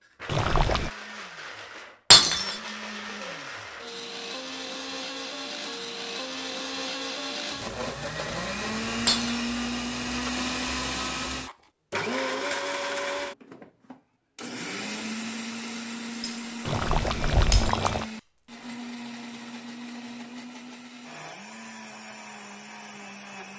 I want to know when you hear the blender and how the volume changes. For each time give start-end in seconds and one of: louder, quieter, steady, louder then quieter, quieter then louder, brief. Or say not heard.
0.0-23.5 louder then quieter.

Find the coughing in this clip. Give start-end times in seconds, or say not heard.
not heard.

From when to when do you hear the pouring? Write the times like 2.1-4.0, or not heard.
0.2-0.9, 16.6-18.1.